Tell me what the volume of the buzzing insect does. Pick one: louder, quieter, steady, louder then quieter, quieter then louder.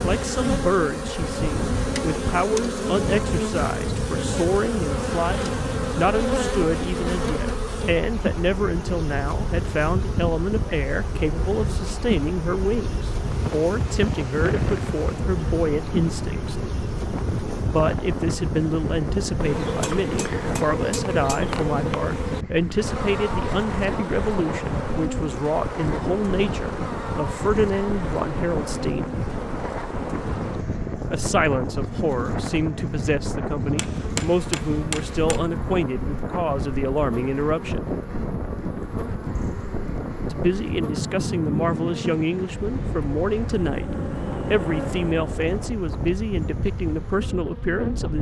quieter.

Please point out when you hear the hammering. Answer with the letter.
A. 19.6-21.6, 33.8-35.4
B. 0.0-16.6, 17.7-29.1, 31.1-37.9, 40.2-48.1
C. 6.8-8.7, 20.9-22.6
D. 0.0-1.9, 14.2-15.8
A.